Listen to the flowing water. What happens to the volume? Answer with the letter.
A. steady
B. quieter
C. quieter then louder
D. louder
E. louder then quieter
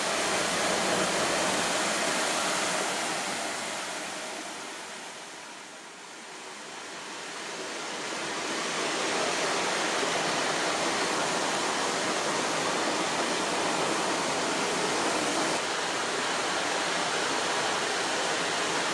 C.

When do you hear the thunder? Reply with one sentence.
You can hear the thunder from 0.2 to 1.6 s.